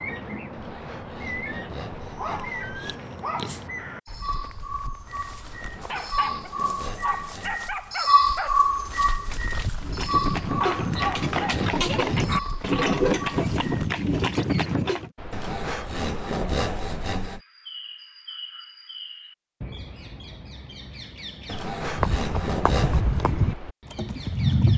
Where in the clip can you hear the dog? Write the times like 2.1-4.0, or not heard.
2.0-13.9.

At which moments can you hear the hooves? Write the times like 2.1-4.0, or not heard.
9.8-15.1, 21.9-24.7.